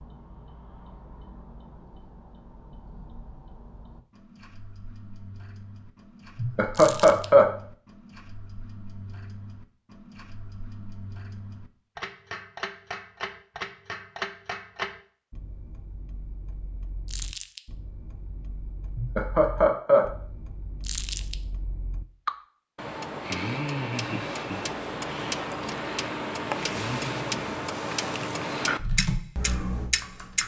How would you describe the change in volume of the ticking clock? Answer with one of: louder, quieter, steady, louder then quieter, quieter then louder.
louder.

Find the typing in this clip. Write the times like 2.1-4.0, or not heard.
28.8-30.4.